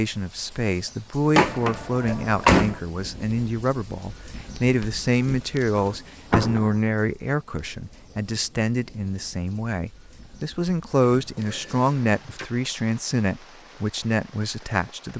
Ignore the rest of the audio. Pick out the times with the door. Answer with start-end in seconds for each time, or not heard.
1.4-2.8, 5.8-6.8, 11.1-12.4.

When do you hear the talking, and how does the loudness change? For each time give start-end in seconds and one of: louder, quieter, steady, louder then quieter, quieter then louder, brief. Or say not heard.
0.0-15.1 steady.